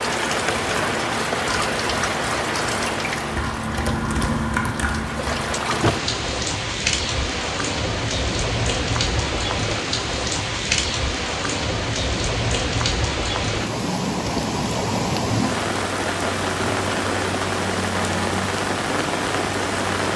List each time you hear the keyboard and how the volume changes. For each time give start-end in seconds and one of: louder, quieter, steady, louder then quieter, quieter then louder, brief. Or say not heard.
0.0-5.8 louder.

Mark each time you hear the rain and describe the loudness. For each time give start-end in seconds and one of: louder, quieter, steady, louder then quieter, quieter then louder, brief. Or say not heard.
0.0-20.1 steady.